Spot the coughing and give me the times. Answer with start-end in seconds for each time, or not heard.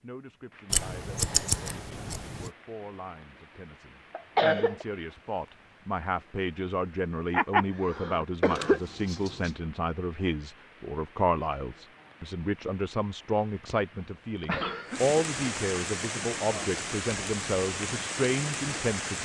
4.2-4.8, 7.3-8.8, 14.4-15.2.